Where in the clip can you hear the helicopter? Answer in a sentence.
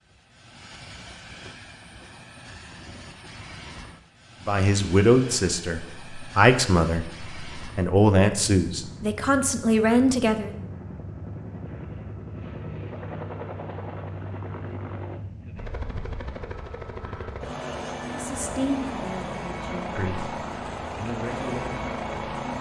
You can hear the helicopter from 0.0 to 22.5 s.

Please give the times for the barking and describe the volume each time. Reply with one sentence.
The barking can't be heard in this clip.